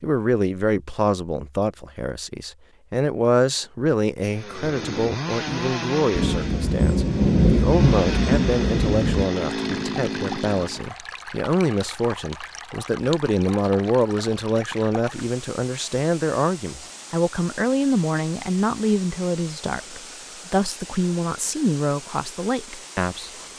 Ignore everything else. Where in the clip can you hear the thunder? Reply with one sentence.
You can hear the thunder from 6.2 to 9.3 s.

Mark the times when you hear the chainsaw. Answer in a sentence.
The chainsaw can be heard from 4.3 to 10.9 s.